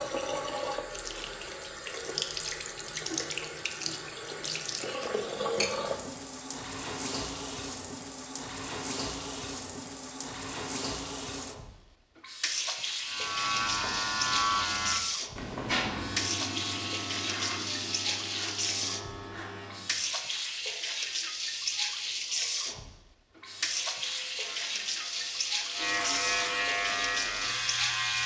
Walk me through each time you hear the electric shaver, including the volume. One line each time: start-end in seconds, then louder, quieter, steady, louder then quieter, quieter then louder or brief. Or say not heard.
13.1-20.1 quieter
23.3-28.2 louder.